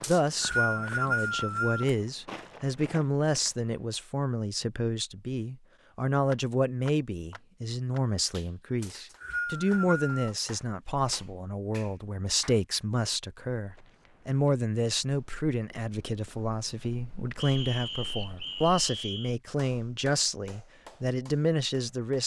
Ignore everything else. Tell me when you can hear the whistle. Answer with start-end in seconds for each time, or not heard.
0.0-1.9, 8.8-10.3, 17.4-19.4.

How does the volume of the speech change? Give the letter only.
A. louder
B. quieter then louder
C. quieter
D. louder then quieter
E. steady
E.